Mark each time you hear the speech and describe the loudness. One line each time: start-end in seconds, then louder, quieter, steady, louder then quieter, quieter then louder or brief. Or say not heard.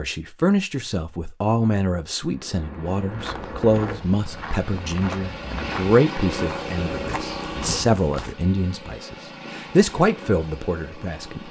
0.0-11.4 steady.